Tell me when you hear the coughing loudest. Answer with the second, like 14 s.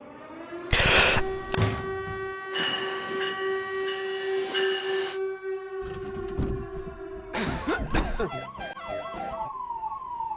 1 s.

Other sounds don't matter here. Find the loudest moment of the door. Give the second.
2 s.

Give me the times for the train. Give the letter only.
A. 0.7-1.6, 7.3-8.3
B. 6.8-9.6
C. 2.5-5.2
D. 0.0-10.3
C.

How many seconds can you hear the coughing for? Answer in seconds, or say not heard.
2 s.